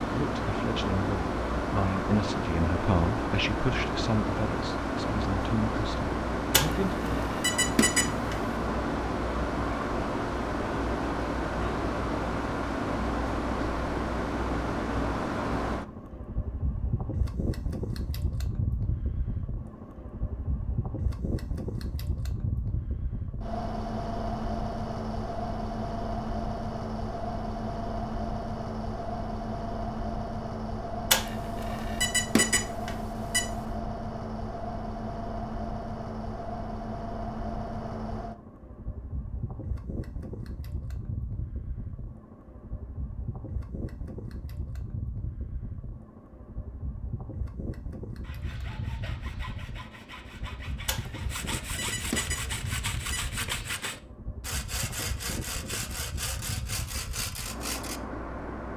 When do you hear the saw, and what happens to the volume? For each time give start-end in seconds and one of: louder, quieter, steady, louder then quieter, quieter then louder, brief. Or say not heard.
48.2-58.0 louder.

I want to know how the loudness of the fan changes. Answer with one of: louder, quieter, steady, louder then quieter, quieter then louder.
quieter.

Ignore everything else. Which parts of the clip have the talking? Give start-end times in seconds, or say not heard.
0.0-7.2.